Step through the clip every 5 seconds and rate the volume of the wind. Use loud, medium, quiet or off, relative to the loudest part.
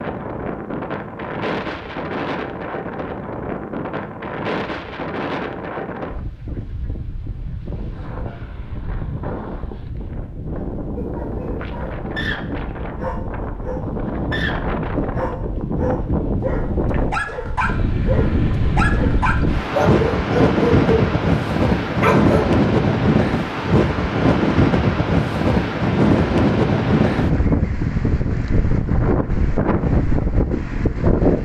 medium, quiet, medium, medium, loud, loud, loud.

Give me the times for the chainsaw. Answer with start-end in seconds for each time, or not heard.
not heard.